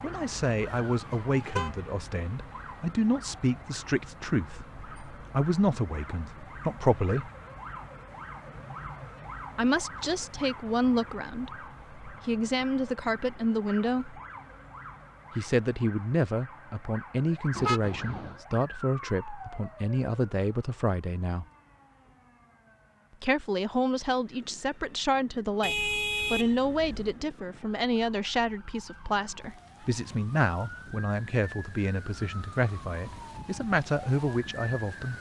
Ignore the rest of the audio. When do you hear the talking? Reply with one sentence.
You can hear the talking from 0.0 to 7.3 s, from 9.6 to 14.2 s, from 15.3 to 21.4 s and from 23.2 to 35.1 s.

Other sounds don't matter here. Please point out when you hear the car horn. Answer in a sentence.
You can hear the car horn from 0.7 to 1.7 s, from 17.6 to 18.4 s and from 25.6 to 27.1 s.